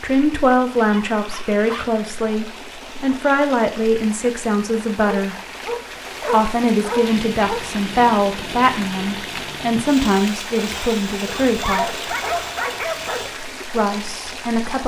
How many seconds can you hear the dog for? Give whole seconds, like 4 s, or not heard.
6 s.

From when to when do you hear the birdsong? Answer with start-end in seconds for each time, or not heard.
not heard.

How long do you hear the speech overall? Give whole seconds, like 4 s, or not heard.
12 s.